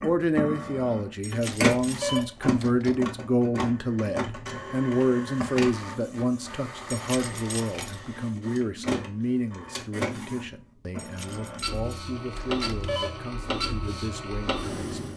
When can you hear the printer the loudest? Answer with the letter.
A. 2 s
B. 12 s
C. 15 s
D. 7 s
A.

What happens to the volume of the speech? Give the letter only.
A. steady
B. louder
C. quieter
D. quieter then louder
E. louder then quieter
C.